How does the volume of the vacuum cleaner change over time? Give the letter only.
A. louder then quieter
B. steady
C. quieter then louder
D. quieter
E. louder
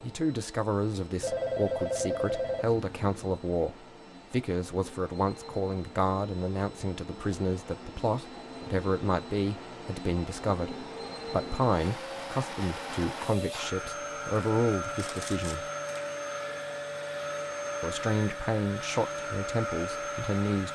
E.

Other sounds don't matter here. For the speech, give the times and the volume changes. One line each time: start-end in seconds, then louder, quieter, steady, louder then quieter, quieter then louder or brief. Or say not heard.
0.0-15.7 steady
17.8-20.7 brief.